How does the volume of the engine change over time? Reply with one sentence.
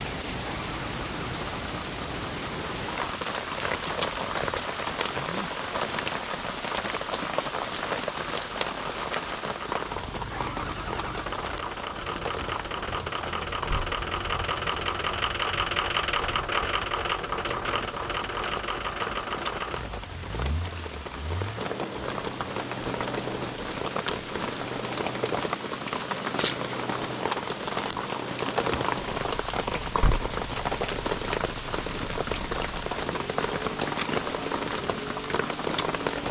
The volume of the engine goes up, then down.